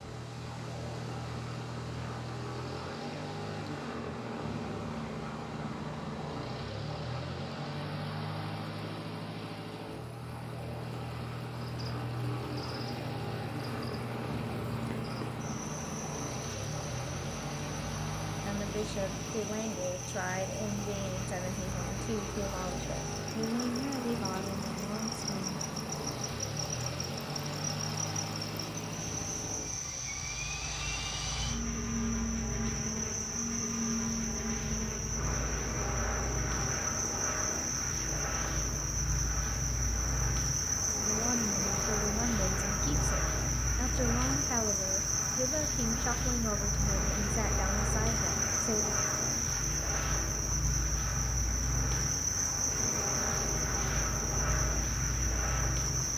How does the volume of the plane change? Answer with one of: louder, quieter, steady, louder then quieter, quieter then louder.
steady.